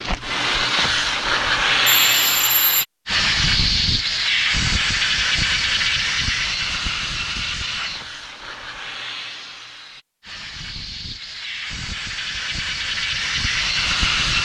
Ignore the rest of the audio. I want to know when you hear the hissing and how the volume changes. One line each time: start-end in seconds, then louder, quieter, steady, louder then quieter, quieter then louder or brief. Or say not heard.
0.0-14.4 quieter then louder.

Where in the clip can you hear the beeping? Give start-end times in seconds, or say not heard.
2.0-2.9.